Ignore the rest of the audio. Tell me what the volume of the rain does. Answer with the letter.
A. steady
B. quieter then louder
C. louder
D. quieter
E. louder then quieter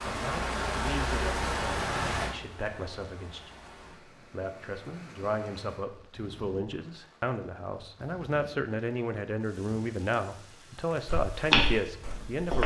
D.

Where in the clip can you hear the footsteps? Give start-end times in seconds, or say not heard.
11.1-12.6.